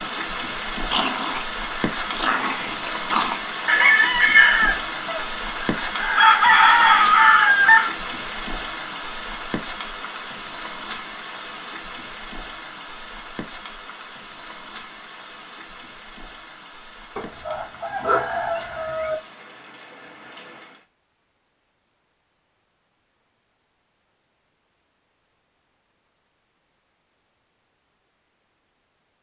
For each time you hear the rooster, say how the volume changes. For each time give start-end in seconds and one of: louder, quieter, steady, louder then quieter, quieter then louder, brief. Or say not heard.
3.6-7.9 quieter then louder
17.1-19.1 brief.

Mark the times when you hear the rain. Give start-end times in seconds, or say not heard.
0.0-20.9.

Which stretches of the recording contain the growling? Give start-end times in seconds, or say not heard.
0.9-3.4.